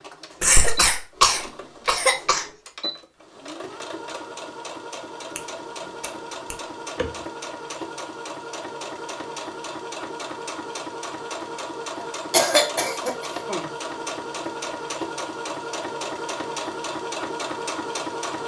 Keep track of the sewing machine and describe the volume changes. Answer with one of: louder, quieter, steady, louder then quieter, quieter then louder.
louder.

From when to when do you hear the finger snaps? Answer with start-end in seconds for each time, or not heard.
5.3-7.2.